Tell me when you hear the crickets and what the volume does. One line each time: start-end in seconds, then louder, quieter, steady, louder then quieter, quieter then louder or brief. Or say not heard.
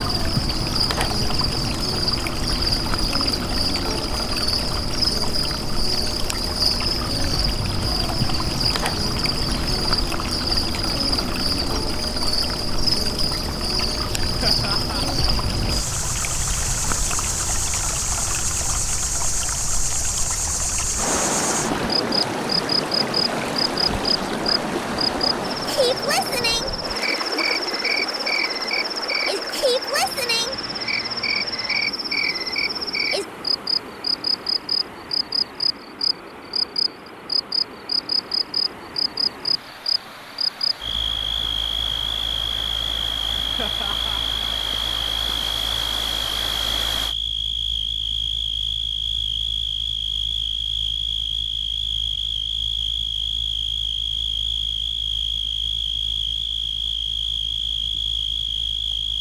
0.0-59.1 steady.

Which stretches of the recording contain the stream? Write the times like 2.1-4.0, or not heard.
0.0-47.1.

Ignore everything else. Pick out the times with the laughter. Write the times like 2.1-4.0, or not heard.
14.4-15.1, 43.5-44.2.